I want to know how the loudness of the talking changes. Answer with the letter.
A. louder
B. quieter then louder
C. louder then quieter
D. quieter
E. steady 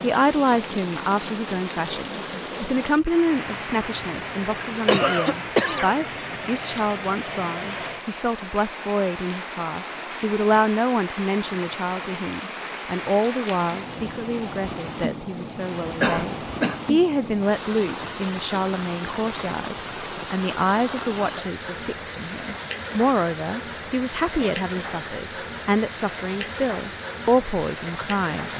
E.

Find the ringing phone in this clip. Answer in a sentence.
You can't hear the ringing phone here.